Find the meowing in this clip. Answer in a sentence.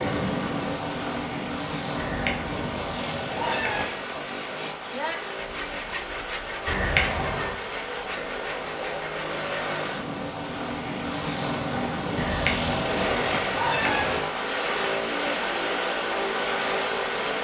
You can hear the meowing from 1.9 to 4.0 s, from 6.7 to 7.5 s and from 12.2 to 14.2 s.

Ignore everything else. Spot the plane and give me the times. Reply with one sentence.
You can hear the plane from 0.0 to 17.3 s.